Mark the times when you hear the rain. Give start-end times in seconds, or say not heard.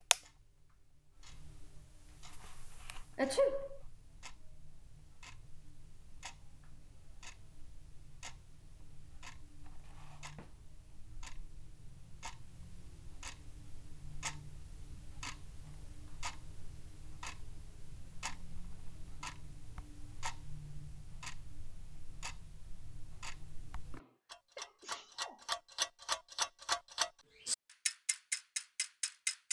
not heard.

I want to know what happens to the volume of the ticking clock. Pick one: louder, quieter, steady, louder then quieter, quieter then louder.
louder.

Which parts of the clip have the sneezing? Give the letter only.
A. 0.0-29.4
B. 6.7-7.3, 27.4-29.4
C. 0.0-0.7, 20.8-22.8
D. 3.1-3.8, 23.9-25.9
D.